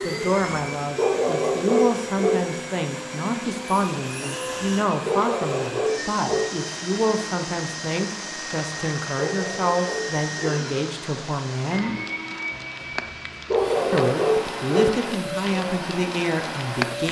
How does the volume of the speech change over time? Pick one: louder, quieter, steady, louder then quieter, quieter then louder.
steady.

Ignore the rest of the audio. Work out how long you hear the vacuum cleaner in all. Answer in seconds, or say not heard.
17 s.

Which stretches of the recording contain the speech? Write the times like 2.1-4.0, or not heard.
0.0-11.9, 13.9-17.0.